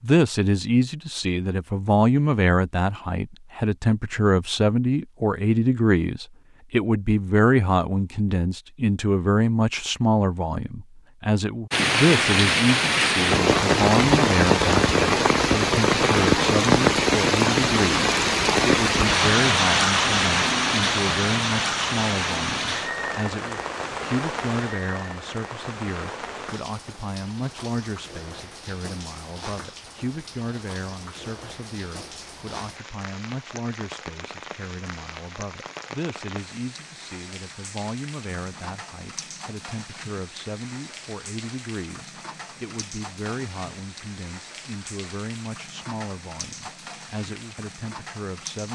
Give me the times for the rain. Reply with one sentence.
You can hear the rain from 11.7 to 48.7 s.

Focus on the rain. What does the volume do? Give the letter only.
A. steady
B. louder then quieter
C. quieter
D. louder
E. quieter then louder
C.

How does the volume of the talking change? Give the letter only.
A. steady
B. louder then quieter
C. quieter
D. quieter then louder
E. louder
C.